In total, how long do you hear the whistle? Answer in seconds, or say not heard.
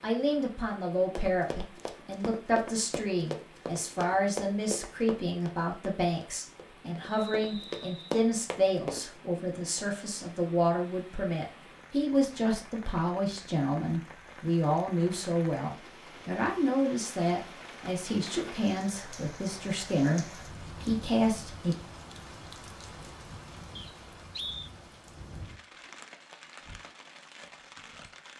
2 s.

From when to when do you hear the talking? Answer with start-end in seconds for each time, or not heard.
0.0-21.8.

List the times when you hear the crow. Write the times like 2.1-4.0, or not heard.
not heard.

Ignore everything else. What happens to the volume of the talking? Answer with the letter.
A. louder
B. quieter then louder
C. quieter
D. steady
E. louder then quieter
D.